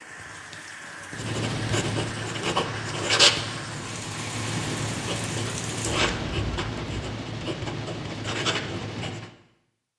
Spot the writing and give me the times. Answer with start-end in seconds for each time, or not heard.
1.1-9.3.